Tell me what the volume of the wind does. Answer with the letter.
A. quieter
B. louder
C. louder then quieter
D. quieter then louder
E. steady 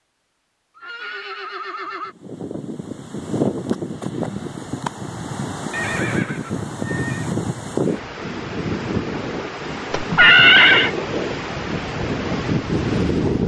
E.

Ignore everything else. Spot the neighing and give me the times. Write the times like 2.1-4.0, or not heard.
0.8-2.1, 5.7-7.3, 9.9-10.9.